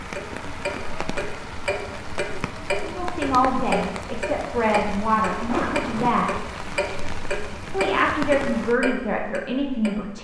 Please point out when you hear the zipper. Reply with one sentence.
The zipper can be heard from 5.3 to 6.1 s.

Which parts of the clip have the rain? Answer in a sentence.
You can hear the rain from 0.0 to 8.8 s.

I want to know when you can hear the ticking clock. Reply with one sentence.
The ticking clock can be heard from 0.0 to 10.2 s.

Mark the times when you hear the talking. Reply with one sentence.
You can hear the talking from 2.8 to 6.3 s and from 7.7 to 10.2 s.